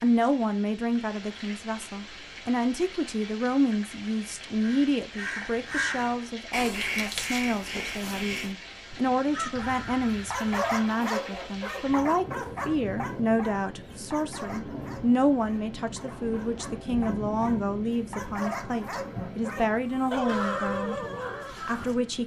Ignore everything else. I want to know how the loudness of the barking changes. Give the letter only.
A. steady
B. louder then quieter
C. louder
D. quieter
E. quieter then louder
E.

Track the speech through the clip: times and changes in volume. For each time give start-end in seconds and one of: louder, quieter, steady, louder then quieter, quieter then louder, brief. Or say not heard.
0.0-21.0 steady
21.6-22.2 brief.